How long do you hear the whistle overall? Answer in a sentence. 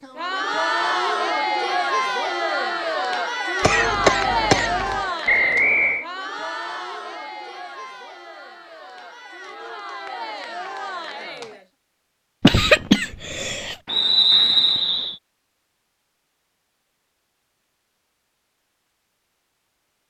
The whistle can be heard for 2 seconds in total.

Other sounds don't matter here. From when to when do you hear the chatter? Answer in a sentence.
The chatter can be heard from 0.0 to 11.7 s.